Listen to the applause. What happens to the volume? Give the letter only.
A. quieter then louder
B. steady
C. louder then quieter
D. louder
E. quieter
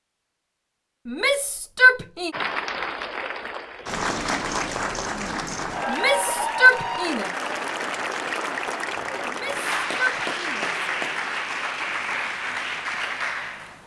B.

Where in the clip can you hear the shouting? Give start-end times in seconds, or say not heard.
1.1-2.3, 5.8-7.3, 9.2-10.8.